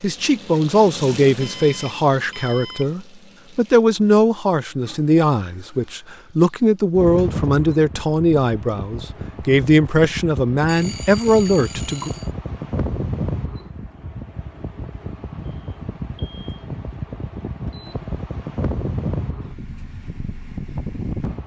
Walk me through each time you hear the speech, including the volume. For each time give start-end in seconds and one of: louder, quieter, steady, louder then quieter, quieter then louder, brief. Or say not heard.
0.0-12.1 steady.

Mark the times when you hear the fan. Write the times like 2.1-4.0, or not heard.
7.0-21.4.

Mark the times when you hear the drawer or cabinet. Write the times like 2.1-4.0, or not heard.
not heard.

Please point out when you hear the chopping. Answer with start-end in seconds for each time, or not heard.
not heard.